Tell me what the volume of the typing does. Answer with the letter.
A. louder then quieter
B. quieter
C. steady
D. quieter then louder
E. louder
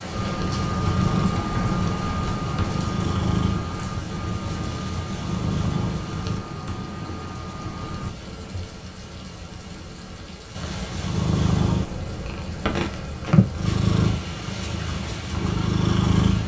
B.